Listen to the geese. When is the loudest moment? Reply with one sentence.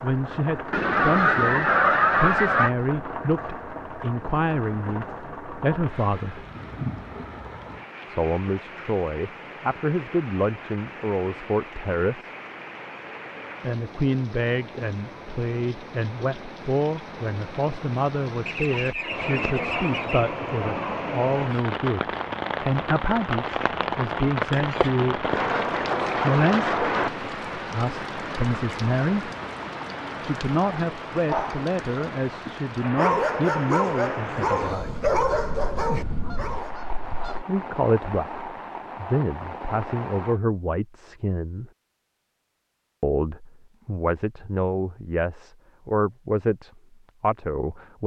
The volume of the geese peaks at 2 seconds.